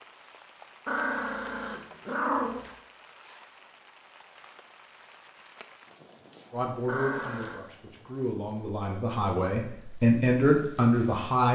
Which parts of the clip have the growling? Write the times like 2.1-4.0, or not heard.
0.8-2.7, 6.8-7.6.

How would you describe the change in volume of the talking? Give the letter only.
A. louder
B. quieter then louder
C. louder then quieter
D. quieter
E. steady
A.